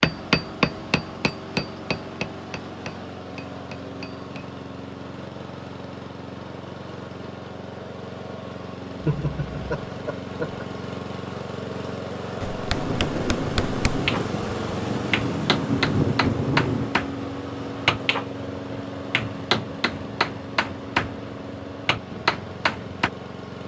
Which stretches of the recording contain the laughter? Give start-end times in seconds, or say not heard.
9.0-10.7.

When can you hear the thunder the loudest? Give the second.
16 s.